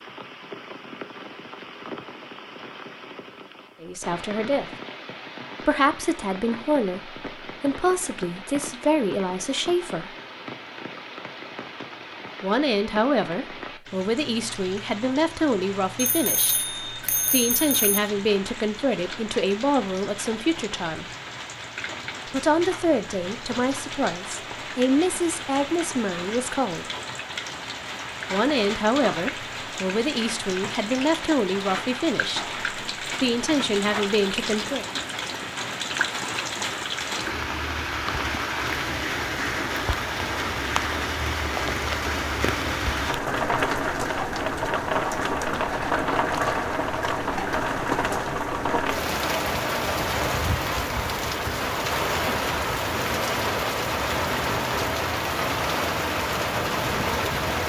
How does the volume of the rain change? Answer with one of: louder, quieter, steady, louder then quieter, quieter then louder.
louder.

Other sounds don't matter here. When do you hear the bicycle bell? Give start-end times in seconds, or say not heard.
15.9-18.0.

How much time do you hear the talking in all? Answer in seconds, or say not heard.
25 s.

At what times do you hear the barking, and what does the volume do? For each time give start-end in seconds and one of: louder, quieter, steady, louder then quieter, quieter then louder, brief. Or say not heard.
not heard.